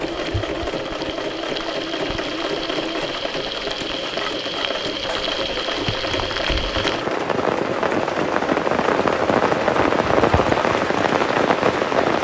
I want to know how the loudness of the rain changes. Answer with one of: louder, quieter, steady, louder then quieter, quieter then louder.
louder.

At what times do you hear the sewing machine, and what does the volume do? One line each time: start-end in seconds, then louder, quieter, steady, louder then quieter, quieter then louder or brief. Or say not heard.
0.0-12.1 steady.